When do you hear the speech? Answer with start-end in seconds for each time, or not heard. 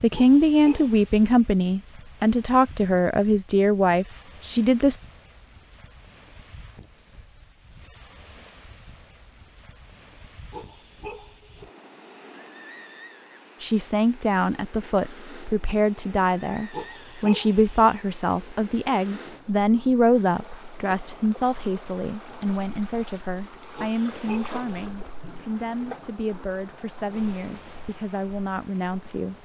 0.0-5.0, 13.6-29.4.